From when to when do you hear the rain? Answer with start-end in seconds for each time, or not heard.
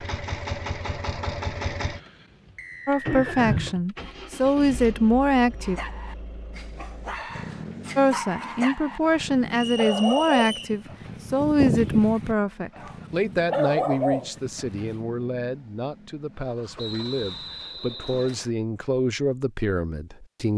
not heard.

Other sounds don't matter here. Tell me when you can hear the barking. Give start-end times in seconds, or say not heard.
5.6-15.0.